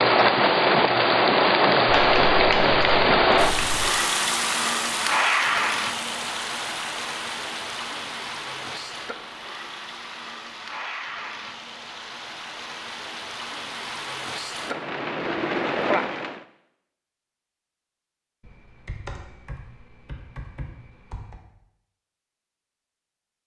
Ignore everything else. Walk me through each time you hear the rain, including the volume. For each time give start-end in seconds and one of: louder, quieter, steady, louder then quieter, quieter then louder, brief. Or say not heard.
0.0-16.4 quieter then louder.